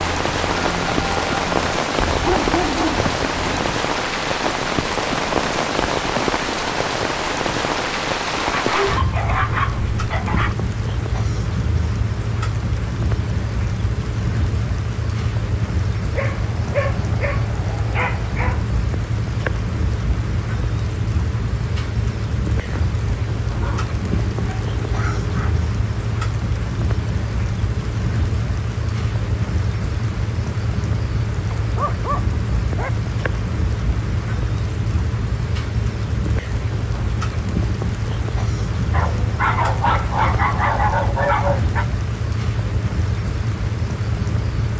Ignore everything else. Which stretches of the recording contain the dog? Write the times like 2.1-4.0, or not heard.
2.0-3.8, 8.6-10.6, 16.1-18.6, 23.6-25.6, 31.6-32.9, 38.9-41.9.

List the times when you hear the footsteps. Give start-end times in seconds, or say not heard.
not heard.